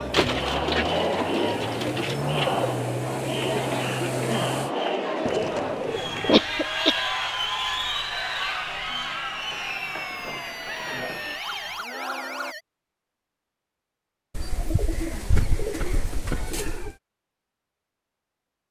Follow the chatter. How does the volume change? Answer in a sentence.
The volume of the chatter goes down.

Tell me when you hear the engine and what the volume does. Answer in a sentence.
The engine can be heard from 0.0 to 4.8 s, getting louder.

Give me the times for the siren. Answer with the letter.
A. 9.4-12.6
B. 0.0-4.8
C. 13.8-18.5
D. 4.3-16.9
A.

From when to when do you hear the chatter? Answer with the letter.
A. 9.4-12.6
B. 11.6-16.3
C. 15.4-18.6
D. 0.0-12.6
D.